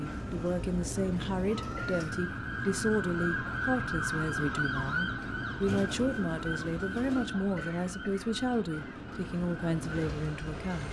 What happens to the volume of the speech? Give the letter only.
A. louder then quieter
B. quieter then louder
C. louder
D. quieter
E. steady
E.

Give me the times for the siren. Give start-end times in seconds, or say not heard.
0.0-10.6.